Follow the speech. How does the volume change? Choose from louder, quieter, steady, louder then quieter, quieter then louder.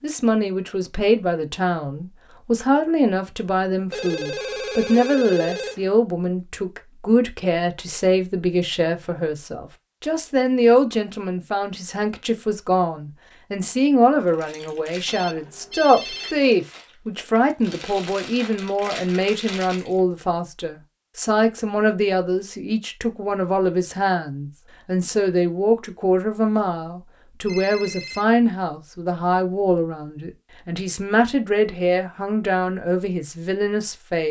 steady.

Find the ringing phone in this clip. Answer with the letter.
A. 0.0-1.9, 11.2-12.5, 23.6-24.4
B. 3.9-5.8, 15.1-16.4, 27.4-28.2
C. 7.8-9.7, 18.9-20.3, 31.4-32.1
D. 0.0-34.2
B.